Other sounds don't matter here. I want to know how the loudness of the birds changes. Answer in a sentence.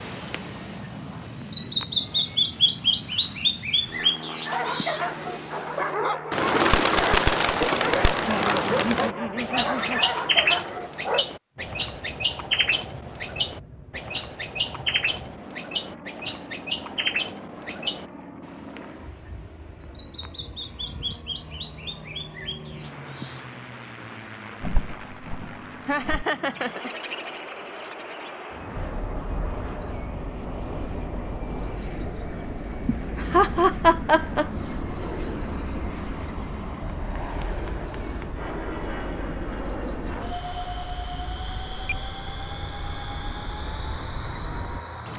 The loudness of the birds goes down.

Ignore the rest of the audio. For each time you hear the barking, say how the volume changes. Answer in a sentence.
The barking can be heard from 4.5 to 11.2 s, at a steady volume.